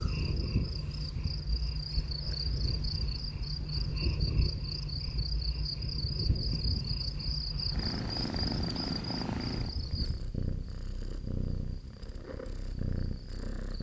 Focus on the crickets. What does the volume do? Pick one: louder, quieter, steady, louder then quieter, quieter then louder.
quieter.